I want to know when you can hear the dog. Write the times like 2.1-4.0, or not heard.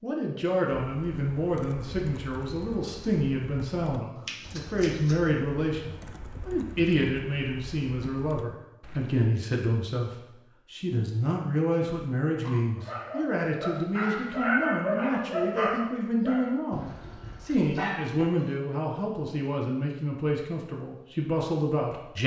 12.4-18.6.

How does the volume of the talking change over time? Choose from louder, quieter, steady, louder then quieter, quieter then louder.
steady.